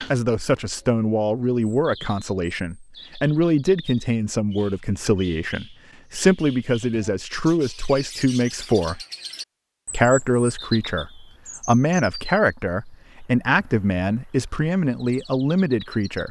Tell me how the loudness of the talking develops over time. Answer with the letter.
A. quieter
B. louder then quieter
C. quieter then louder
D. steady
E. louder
D.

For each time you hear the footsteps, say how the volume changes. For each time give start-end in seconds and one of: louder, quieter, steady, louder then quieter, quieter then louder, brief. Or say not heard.
not heard.